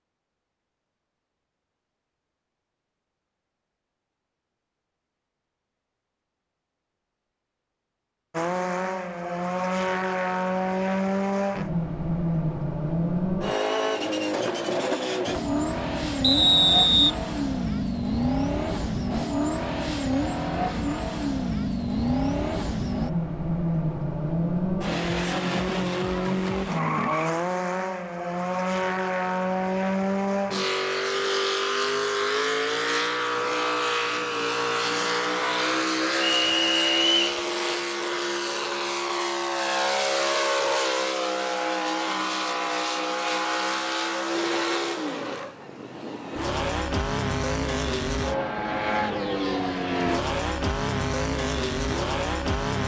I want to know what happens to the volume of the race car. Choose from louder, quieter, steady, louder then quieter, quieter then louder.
steady.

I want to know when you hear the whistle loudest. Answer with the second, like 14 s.
17 s.